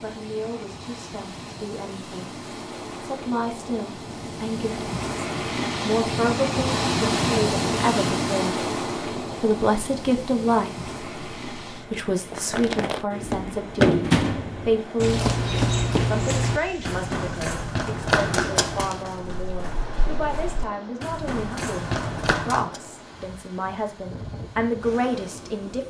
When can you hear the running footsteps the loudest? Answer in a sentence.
The volume of the running footsteps peaks at 14 seconds.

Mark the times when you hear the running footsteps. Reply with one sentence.
You can hear the running footsteps from 12.3 to 22.8 s.